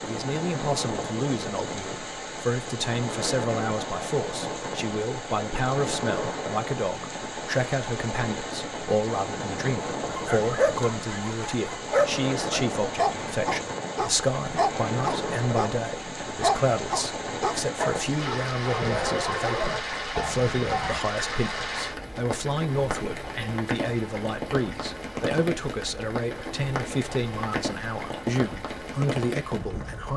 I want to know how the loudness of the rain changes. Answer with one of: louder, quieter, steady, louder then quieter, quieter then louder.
steady.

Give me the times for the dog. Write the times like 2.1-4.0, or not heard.
10.1-21.0.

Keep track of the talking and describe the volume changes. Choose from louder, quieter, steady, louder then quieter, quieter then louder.
steady.